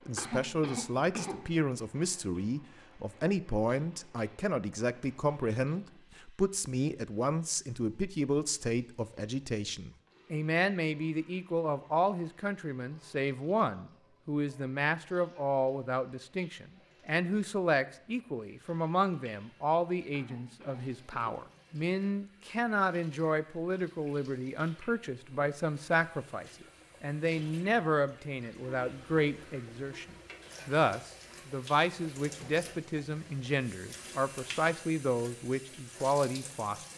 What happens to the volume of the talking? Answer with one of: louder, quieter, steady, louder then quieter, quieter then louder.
steady.